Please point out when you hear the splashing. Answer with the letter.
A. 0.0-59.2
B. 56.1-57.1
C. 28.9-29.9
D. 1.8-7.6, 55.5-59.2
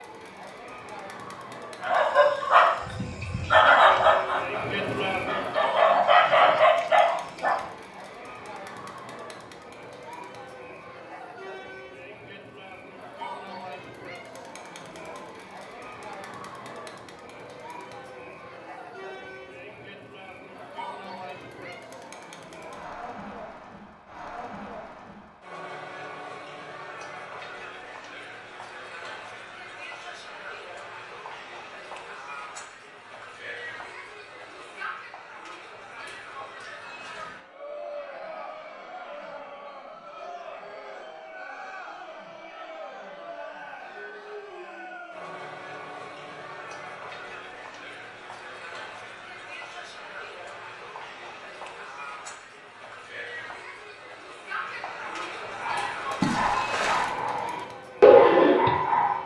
B.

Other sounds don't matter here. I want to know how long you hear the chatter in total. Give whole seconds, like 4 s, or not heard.
59 s.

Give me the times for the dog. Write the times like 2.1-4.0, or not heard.
1.8-7.6, 55.5-59.2.